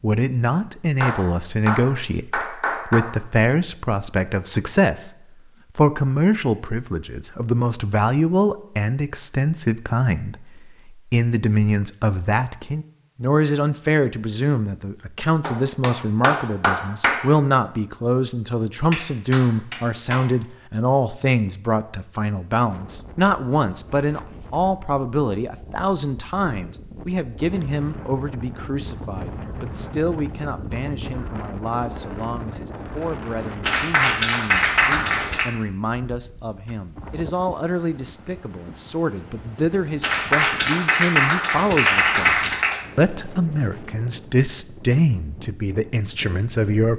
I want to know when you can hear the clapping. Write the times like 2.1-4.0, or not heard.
1.0-3.0, 15.4-17.2, 18.9-20.2, 33.6-35.5, 40.0-42.8.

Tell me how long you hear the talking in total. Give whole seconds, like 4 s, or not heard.
46 s.